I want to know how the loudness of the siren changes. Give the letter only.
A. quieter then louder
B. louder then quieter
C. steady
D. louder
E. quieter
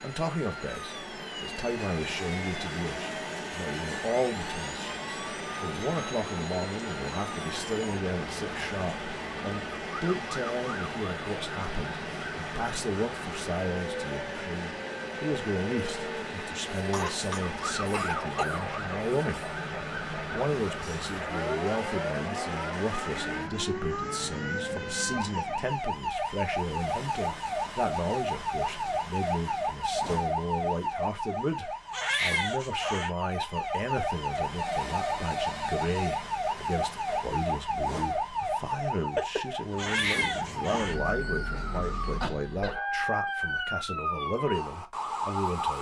D.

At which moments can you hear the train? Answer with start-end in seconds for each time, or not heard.
0.0-25.9, 39.7-42.4.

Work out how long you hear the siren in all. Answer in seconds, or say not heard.
46 s.